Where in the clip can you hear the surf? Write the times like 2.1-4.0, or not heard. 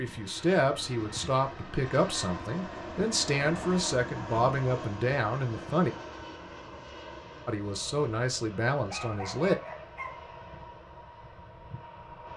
not heard.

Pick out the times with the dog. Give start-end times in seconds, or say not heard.
8.8-10.3.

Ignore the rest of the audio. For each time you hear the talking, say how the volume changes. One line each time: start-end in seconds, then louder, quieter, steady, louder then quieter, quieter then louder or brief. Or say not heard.
0.0-5.9 steady
7.5-9.6 brief.